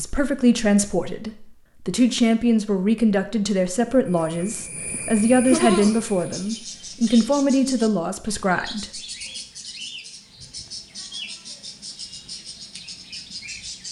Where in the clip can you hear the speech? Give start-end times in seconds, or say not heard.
0.0-9.0.